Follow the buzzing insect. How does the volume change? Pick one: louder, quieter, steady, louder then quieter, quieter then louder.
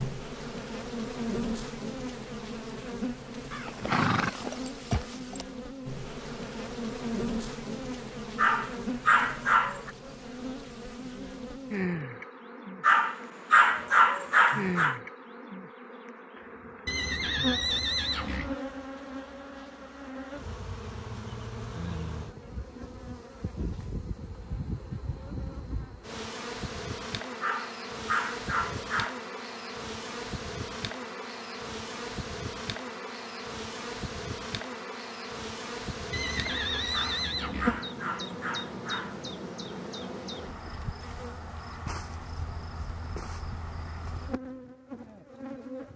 steady.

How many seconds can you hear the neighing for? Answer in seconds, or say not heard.
5 s.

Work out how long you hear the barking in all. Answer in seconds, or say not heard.
8 s.